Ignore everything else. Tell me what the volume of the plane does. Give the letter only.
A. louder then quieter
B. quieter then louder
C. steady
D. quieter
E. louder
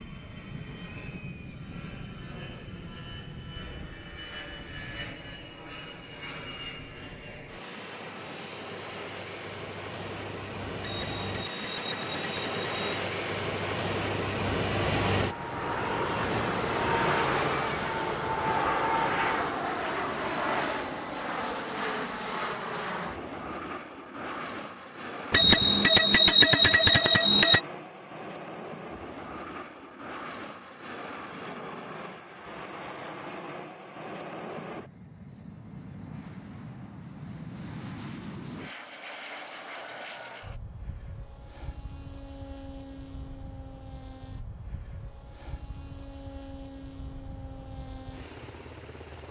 A.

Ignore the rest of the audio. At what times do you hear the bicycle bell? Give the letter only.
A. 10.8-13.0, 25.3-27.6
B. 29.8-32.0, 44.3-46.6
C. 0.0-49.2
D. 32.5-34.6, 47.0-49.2
A.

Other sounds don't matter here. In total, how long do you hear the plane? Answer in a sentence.
The plane can be heard for 49 seconds in total.